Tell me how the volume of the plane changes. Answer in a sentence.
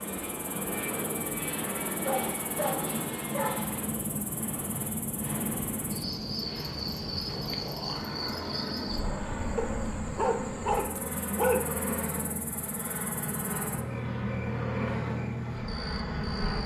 The volume of the plane stays about the same.